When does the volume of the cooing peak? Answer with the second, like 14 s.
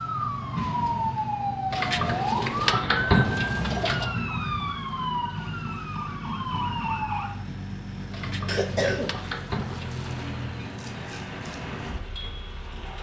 3 s.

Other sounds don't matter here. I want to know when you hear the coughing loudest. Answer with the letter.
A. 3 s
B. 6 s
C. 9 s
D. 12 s
C.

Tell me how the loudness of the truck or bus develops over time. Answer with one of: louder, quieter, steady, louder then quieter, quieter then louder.
steady.